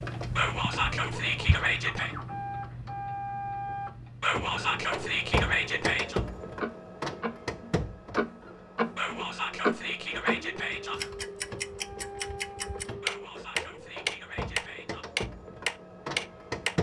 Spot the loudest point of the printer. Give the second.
6 s.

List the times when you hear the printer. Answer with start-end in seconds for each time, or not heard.
0.0-16.7.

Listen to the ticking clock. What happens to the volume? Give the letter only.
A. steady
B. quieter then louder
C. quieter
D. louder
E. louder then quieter
B.